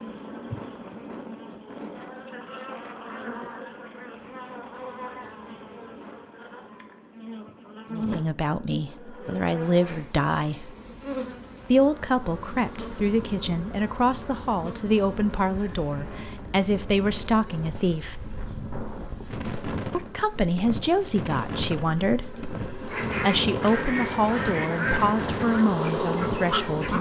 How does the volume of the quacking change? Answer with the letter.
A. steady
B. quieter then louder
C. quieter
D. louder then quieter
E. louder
C.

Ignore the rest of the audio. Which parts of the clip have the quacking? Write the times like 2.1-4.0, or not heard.
22.9-26.9.